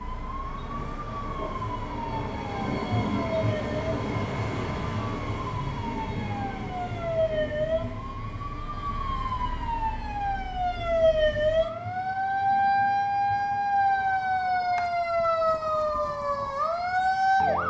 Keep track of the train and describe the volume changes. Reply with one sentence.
The loudness of the train goes down.